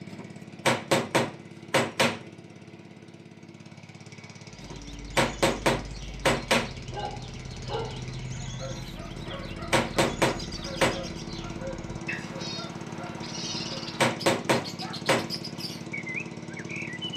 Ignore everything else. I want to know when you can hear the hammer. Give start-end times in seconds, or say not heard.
0.1-2.2, 4.6-6.7, 9.2-11.0, 13.4-15.3.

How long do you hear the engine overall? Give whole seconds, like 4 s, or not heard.
17 s.